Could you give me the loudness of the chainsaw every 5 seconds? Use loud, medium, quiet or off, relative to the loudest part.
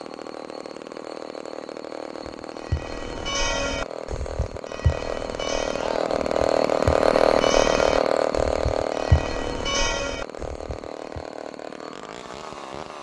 quiet, loud, quiet.